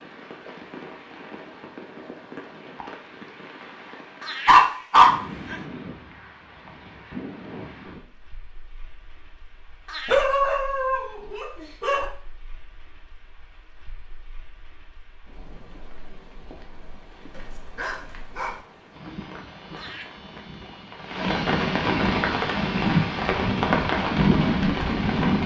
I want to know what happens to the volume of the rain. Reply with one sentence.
The loudness of the rain goes down, then up.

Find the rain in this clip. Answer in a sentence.
You can hear the rain from 0.0 to 25.4 s.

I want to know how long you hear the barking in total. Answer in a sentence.
The barking can be heard for 4 seconds in total.